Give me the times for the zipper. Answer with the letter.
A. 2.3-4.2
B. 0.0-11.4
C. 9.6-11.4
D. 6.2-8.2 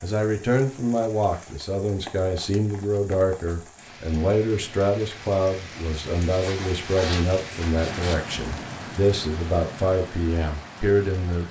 D.